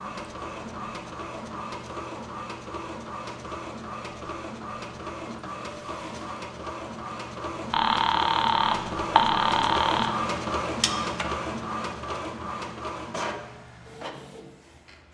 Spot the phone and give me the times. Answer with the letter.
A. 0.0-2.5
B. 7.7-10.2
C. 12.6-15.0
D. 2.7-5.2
B.